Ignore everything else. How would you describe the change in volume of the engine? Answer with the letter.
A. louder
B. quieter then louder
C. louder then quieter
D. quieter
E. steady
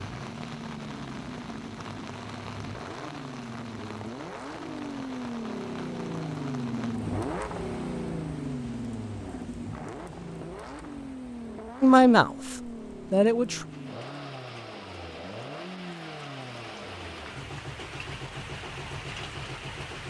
C.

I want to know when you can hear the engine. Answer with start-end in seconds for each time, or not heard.
0.0-20.0.